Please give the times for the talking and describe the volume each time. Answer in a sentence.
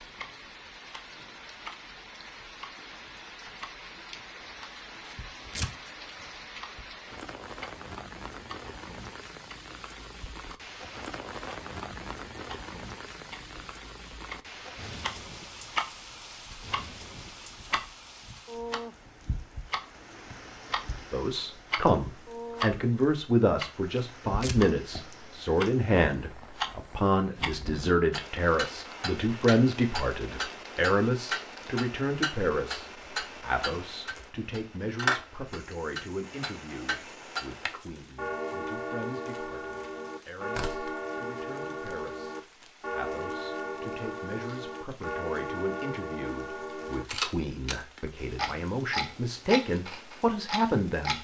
You can hear the talking from 21.1 to 51.1 s, getting quieter then louder.